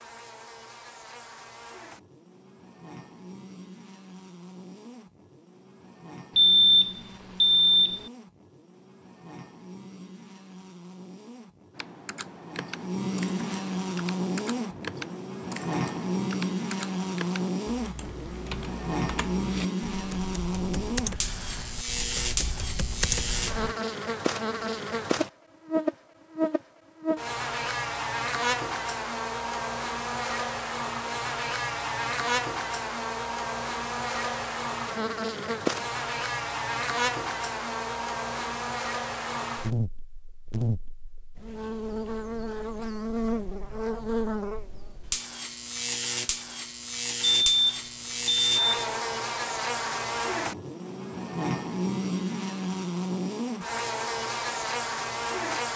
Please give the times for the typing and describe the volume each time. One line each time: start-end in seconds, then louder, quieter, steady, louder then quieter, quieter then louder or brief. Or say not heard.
11.7-23.8 louder.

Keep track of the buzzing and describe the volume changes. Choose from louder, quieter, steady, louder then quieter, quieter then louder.
louder.